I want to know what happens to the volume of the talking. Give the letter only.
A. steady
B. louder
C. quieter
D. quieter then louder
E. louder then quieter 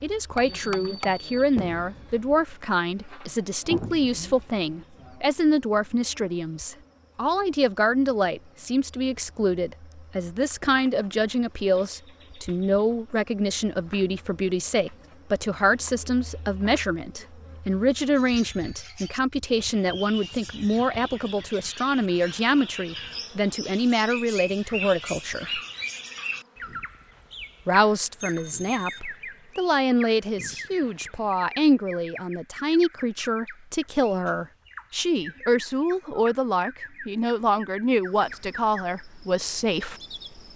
A.